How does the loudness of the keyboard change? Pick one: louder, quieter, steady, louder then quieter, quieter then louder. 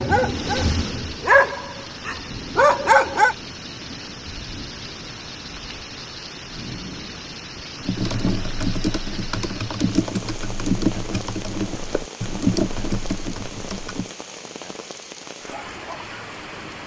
steady.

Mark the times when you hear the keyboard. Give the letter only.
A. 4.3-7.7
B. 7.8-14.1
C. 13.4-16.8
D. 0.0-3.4
B.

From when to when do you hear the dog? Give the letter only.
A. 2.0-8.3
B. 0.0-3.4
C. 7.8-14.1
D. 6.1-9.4
B.